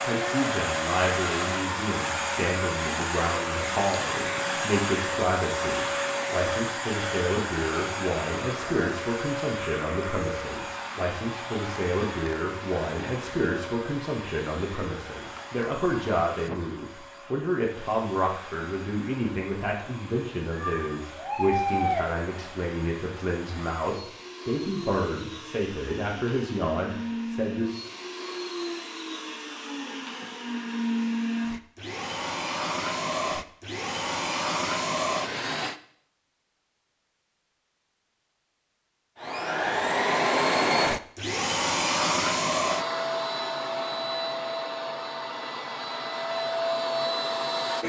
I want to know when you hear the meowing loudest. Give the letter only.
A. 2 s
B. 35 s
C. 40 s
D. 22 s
D.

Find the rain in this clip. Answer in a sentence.
The rain can't be heard in this clip.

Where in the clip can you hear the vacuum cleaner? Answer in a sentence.
The vacuum cleaner can be heard from 0.0 to 35.8 s and from 39.1 to 47.8 s.